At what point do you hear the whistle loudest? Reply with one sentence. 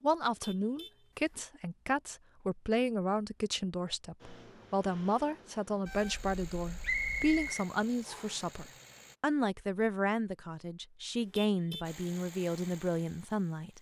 The volume of the whistle peaks at 7 seconds.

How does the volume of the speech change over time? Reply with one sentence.
The loudness of the speech stays about the same.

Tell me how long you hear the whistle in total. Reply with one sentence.
The whistle can be heard for 2 seconds in total.